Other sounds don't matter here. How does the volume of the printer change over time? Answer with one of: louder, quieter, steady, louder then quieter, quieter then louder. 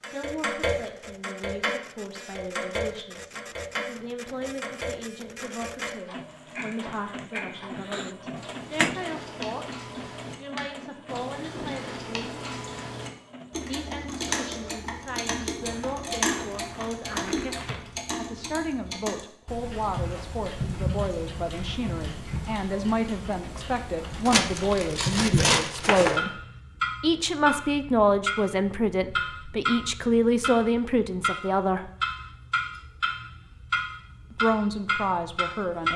louder then quieter.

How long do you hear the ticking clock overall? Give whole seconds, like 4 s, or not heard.
36 s.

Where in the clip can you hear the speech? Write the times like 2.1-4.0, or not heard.
0.1-12.3, 13.7-26.4, 27.0-31.9, 34.3-35.9.